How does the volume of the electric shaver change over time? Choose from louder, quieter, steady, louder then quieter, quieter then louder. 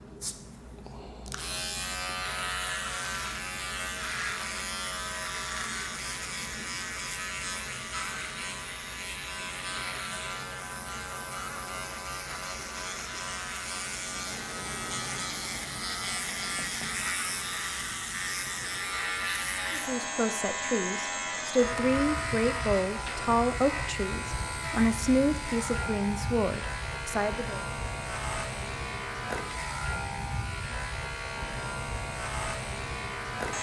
steady.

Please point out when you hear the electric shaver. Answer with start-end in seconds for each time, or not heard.
0.0-33.5.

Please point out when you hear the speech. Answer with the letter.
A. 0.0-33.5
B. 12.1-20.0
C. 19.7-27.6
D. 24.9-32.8
C.